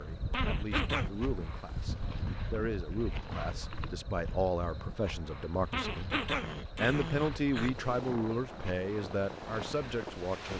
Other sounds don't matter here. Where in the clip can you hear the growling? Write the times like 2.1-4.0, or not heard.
0.3-1.1, 5.7-7.7.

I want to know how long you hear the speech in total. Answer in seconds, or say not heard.
10 s.